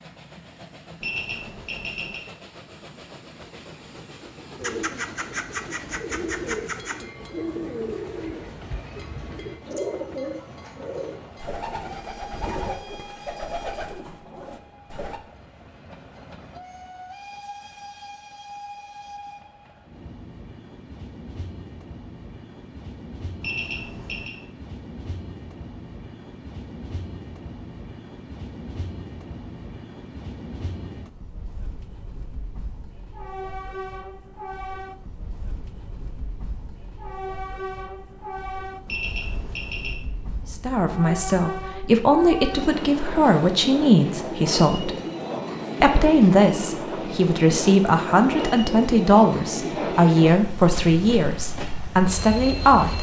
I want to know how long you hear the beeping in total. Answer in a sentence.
You can hear the beeping for 3 seconds altogether.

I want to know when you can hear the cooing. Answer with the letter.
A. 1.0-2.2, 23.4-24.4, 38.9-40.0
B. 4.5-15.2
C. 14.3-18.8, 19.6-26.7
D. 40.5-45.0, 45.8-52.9
B.